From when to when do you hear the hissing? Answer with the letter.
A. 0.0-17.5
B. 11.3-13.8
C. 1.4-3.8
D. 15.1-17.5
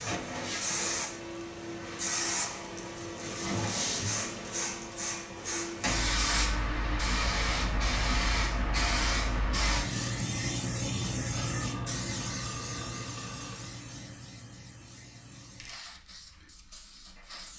A.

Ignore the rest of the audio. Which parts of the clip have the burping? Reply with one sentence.
The burping can be heard from 11.3 to 13.8 s.